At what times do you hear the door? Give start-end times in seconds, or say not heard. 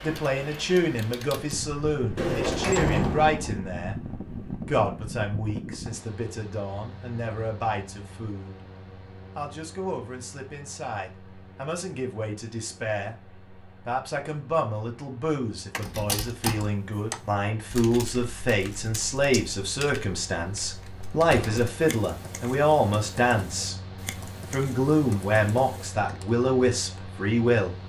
2.1-3.6, 15.7-16.6, 21.3-21.8.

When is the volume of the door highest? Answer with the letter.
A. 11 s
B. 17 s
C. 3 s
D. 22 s
C.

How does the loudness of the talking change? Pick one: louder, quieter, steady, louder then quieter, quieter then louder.
quieter then louder.